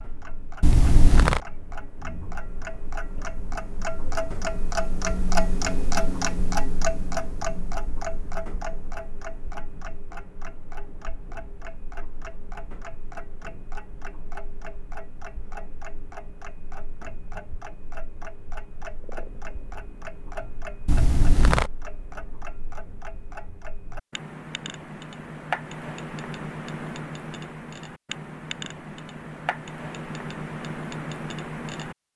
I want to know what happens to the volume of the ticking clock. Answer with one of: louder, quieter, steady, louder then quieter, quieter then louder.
quieter then louder.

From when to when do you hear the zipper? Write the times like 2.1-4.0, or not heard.
0.6-1.4, 20.9-21.7.